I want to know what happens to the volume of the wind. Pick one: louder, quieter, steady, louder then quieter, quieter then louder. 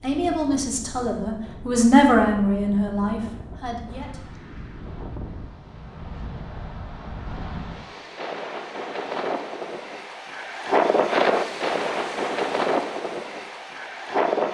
louder.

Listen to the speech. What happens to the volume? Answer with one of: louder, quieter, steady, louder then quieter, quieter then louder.
louder then quieter.